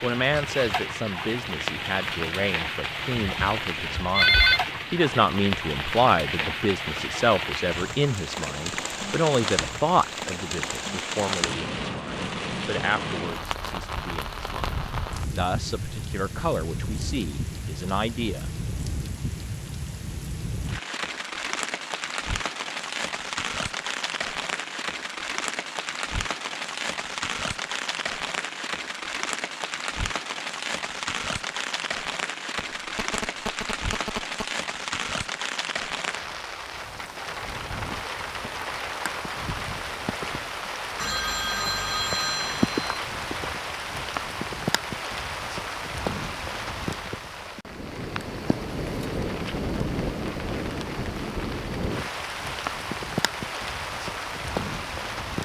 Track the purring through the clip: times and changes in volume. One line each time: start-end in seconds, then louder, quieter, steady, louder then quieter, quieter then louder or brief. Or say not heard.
not heard.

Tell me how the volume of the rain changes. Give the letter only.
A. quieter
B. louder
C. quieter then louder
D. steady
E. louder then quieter
D.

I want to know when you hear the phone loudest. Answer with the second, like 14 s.
4 s.